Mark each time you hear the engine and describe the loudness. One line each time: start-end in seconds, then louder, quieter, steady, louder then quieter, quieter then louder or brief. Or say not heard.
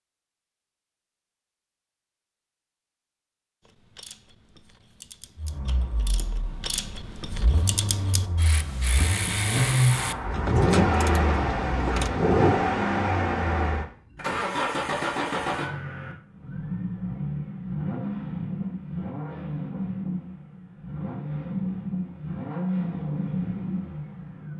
5.3-24.5 louder then quieter.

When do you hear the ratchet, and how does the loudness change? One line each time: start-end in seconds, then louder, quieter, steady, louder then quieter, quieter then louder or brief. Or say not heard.
3.6-12.1 louder.